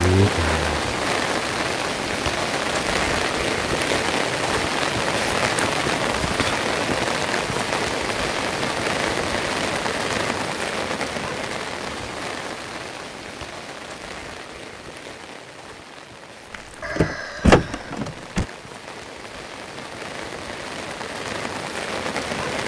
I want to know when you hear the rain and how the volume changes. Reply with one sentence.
You can hear the rain from 0.0 to 22.6 s, getting quieter then louder.